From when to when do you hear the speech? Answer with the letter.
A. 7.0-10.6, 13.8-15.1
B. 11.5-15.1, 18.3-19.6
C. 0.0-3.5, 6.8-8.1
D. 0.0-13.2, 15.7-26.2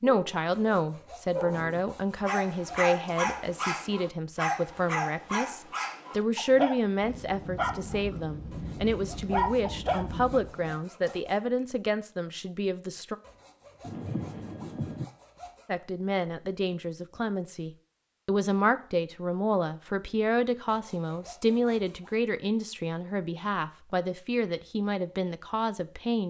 D.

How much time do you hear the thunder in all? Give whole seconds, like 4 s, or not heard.
5 s.